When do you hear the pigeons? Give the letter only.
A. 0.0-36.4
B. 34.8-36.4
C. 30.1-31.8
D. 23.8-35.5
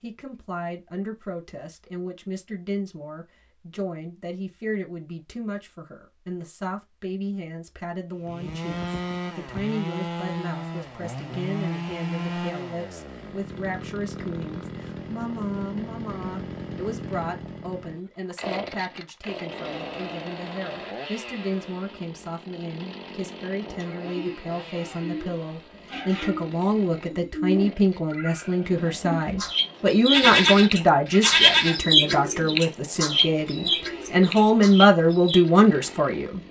D.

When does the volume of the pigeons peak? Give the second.
32 s.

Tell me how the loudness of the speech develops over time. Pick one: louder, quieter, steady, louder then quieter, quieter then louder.
louder.